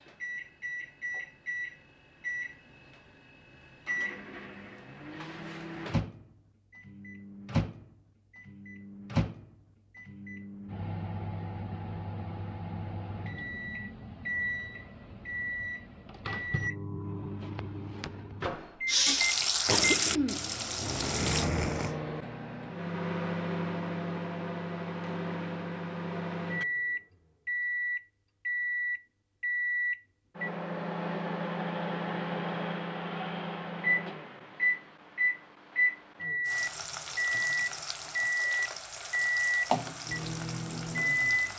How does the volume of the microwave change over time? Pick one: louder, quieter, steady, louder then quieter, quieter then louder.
louder.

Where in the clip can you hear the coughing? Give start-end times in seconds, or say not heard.
19.6-22.1.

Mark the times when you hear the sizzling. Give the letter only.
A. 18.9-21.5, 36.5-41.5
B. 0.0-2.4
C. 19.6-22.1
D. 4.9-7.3
A.